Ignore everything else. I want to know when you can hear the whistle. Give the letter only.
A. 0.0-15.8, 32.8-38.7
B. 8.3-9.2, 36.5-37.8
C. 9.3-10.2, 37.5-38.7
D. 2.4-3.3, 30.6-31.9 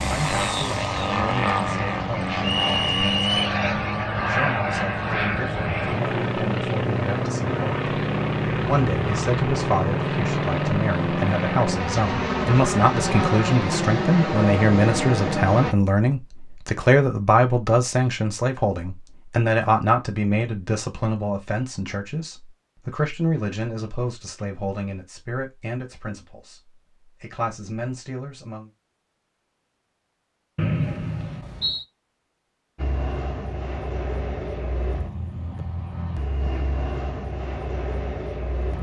D.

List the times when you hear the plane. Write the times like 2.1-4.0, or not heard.
0.0-15.8, 32.8-38.7.